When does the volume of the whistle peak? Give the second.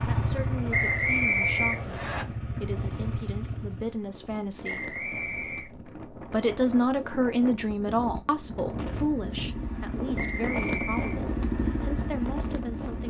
1 s.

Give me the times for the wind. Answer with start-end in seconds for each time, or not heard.
0.0-13.0.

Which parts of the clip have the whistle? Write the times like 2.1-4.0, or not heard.
0.7-2.2, 4.6-5.7, 10.2-11.2.